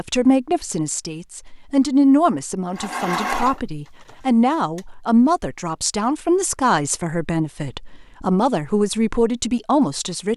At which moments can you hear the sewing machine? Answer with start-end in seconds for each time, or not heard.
2.8-4.8.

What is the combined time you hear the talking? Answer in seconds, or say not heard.
10 s.